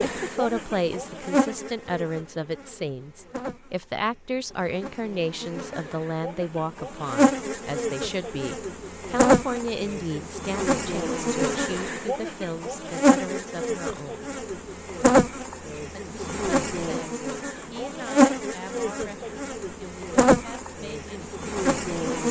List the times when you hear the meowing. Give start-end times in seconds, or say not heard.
not heard.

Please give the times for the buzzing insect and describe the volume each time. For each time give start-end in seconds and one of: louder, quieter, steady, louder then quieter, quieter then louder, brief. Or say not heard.
0.0-22.2 louder.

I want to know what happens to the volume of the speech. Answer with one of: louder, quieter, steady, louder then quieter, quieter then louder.
quieter.